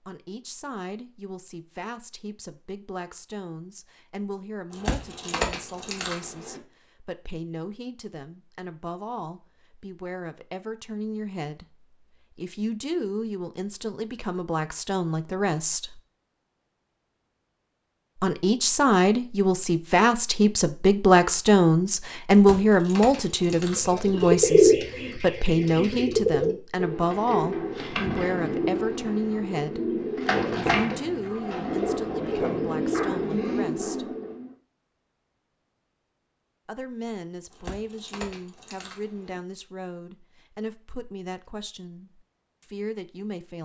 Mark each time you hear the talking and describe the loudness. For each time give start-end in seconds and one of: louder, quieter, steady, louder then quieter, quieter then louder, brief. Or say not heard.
0.0-16.0 louder
18.2-34.1 quieter
36.6-43.6 steady.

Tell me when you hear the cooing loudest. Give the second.
25 s.